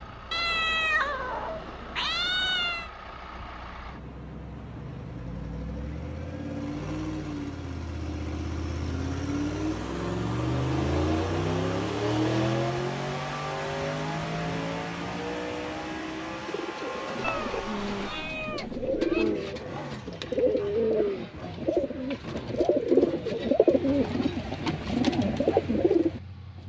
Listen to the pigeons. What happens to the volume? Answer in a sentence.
The volume of the pigeons goes up.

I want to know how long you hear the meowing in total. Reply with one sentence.
The meowing can be heard for 5 seconds in total.